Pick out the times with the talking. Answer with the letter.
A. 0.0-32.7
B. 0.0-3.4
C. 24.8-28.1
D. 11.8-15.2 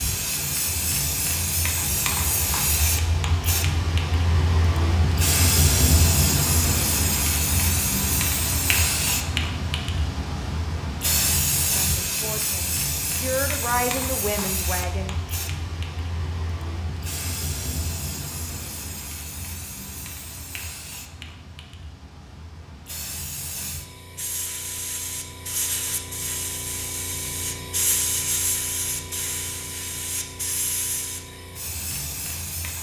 D.